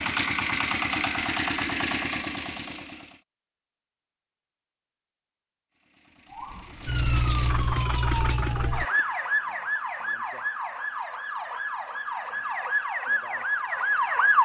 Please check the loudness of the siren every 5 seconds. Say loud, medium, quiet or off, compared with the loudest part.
off, loud, loud.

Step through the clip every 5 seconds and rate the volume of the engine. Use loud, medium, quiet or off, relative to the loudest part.
loud, medium, off.